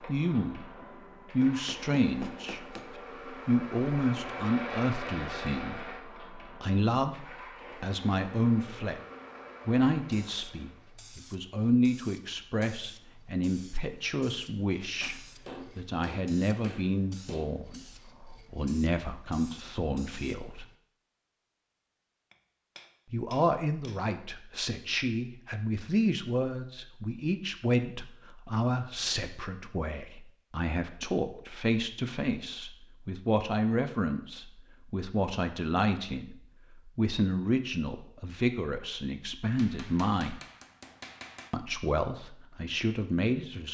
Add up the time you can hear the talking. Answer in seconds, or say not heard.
39 s.